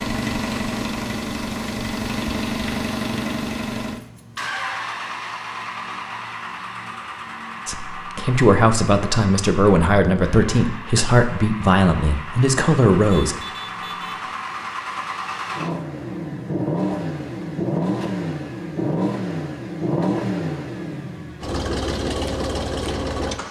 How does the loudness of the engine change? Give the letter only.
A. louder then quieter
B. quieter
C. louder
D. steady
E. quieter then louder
E.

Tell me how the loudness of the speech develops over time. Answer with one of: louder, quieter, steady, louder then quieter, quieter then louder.
steady.